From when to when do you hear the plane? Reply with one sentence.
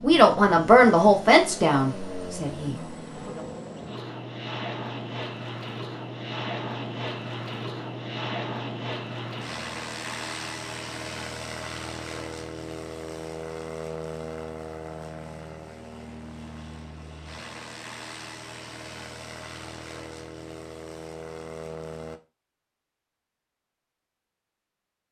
The plane can be heard from 0.0 to 22.2 s.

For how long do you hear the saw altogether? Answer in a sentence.
The saw can't be heard in this clip.